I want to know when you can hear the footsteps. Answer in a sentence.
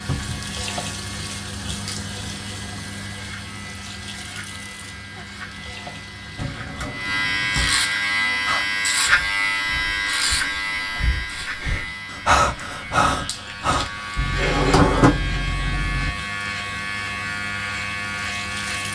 You can't hear the footsteps here.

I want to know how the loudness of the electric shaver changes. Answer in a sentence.
The volume of the electric shaver goes up, then down.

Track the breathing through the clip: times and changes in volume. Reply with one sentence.
You can hear the breathing from 8.3 to 14.1 s, getting louder.